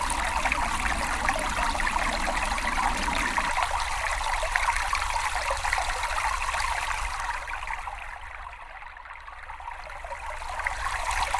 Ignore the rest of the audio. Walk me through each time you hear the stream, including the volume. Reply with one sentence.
The stream can be heard from 0.0 to 11.3 s, getting quieter.